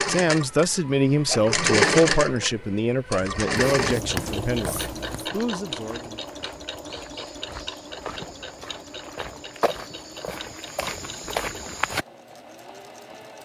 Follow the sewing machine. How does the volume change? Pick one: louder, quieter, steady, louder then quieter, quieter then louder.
quieter.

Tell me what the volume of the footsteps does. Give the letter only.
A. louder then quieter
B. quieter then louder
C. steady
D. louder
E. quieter
D.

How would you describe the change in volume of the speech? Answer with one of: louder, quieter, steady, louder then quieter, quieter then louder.
quieter.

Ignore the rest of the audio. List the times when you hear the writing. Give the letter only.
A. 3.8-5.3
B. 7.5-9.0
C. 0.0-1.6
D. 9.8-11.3
A.